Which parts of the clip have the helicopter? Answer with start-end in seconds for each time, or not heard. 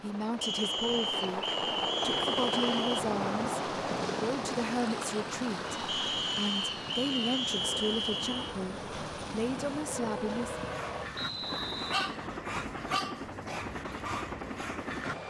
0.0-15.2.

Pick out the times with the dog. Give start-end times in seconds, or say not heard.
10.6-15.2.